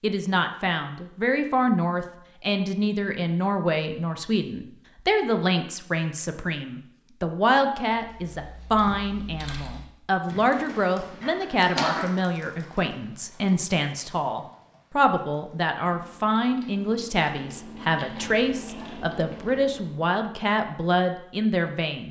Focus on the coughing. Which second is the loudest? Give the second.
12 s.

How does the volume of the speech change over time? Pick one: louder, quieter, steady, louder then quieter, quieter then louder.
steady.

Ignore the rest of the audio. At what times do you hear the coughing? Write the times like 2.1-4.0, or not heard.
10.5-12.1.